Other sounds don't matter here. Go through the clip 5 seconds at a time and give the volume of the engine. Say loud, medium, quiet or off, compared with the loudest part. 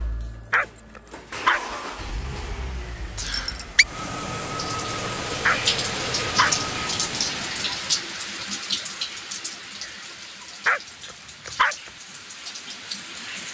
loud, loud, off.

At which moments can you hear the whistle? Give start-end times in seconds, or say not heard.
3.1-3.9.